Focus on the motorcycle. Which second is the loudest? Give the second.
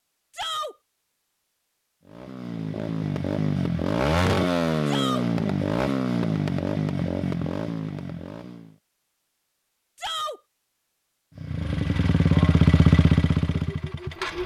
13 s.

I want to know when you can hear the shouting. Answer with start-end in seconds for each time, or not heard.
0.3-0.8, 4.8-5.2, 9.9-10.4.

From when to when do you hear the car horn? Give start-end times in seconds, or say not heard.
not heard.